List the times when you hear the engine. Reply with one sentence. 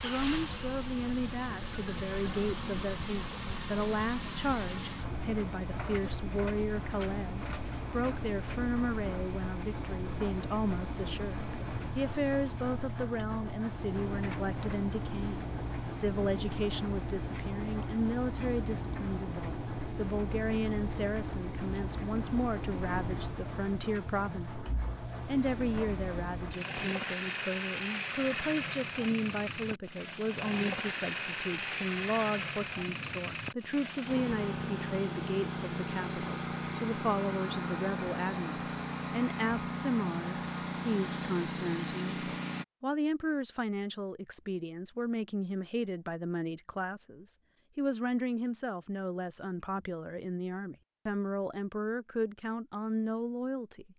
You can hear the engine from 0.0 to 42.6 s.